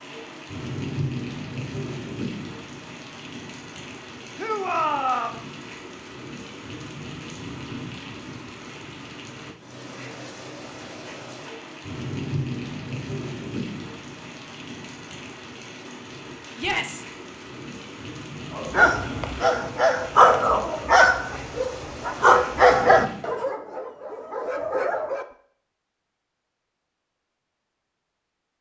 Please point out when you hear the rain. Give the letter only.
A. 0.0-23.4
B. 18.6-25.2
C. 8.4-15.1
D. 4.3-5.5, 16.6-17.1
A.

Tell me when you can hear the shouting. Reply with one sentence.
You can hear the shouting from 4.3 to 5.5 s and from 16.6 to 17.1 s.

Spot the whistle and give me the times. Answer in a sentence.
The whistle can't be heard in this clip.